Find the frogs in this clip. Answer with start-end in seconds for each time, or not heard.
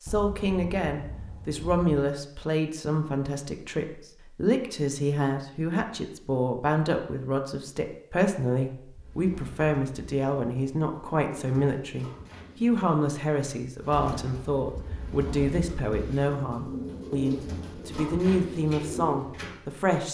not heard.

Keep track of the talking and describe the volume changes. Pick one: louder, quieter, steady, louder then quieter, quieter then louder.
steady.